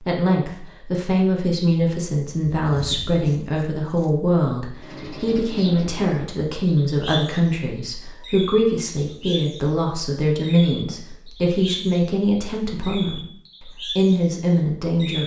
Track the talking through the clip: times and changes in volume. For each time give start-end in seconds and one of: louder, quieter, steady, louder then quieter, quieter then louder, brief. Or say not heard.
0.0-15.2 steady.